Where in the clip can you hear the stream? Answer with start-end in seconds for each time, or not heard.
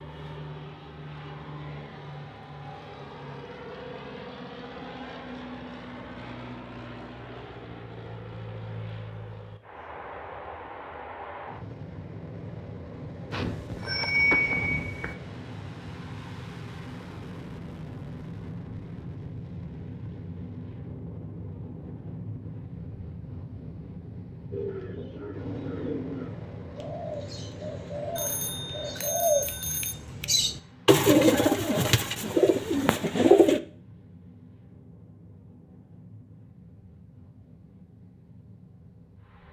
not heard.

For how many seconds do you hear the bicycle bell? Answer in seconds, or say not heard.
4 s.